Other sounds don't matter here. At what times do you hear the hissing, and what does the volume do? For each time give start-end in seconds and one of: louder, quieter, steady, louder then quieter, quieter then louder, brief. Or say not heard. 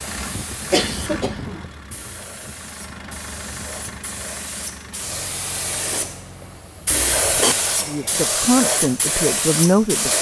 0.0-10.1 louder.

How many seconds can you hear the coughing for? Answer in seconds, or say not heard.
2 s.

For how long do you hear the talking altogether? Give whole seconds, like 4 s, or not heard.
2 s.